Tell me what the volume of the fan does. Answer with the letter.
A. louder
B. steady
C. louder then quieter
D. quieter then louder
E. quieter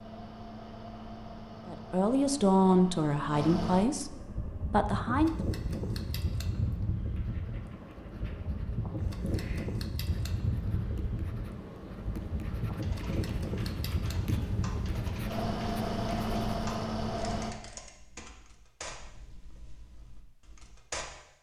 A.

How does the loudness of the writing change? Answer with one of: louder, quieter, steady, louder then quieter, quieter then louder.
louder.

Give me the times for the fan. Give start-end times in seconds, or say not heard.
0.0-17.6.